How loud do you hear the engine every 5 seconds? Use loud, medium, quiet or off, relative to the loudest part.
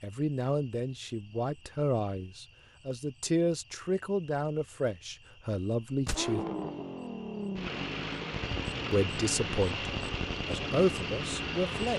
off, loud, loud.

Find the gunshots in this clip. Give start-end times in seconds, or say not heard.
6.0-6.5.